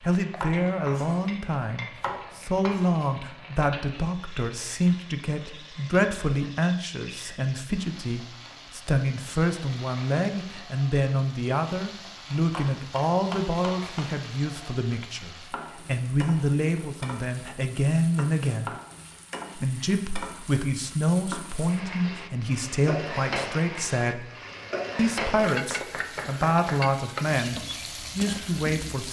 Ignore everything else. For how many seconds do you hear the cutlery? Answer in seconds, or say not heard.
not heard.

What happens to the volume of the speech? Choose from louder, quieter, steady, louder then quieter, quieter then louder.
steady.